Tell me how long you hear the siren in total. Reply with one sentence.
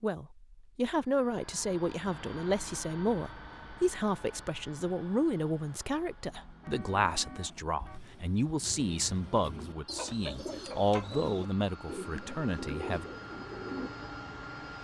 You can't hear the siren here.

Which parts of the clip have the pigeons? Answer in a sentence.
You can hear the pigeons from 7.0 to 13.9 s.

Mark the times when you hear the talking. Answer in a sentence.
You can hear the talking from 0.0 to 13.1 s.